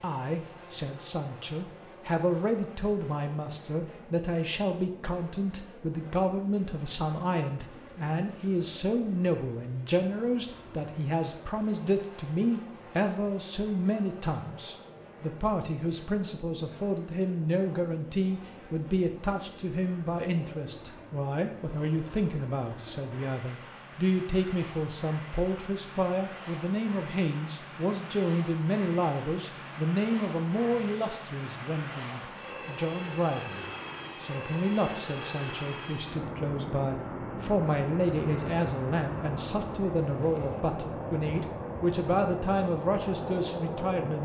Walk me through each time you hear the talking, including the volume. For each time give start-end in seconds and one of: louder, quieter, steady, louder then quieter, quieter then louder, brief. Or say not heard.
0.0-44.2 steady.